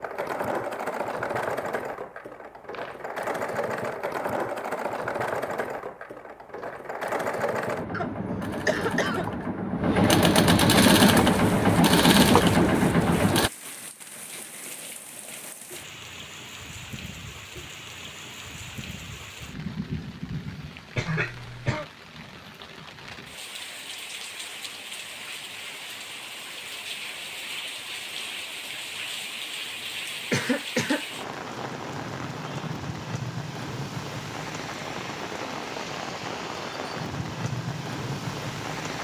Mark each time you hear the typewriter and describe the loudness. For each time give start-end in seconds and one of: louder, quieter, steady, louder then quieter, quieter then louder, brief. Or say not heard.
not heard.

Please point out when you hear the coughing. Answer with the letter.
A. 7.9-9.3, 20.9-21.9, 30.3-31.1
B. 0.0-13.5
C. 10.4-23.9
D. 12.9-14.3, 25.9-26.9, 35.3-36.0
A.